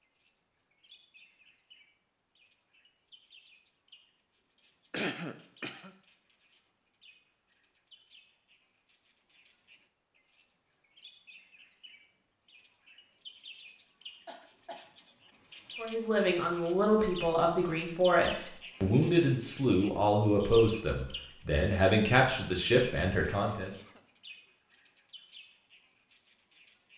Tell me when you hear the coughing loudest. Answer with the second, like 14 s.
5 s.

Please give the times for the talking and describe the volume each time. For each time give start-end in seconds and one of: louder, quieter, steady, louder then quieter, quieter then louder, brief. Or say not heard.
15.8-23.7 steady.